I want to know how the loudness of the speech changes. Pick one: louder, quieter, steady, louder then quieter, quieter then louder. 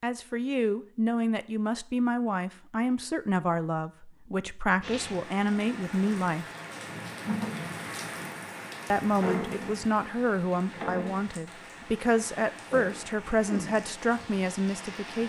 steady.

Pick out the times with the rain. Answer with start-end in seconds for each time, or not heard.
4.8-15.2.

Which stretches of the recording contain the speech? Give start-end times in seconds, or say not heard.
0.0-6.5, 8.9-15.2.